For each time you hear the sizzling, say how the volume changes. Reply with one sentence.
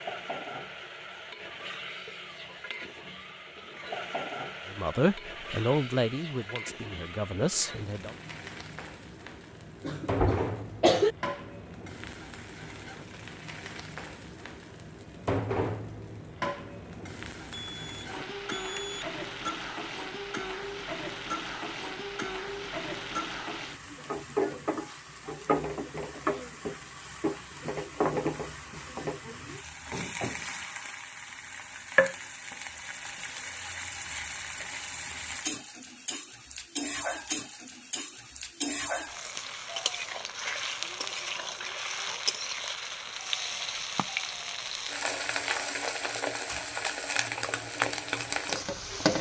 The sizzling can be heard from 0.0 to 49.1 s, getting louder.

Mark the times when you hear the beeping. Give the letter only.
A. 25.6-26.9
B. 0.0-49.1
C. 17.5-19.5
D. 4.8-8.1
C.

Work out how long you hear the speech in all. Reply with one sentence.
The speech can be heard for 3 seconds in total.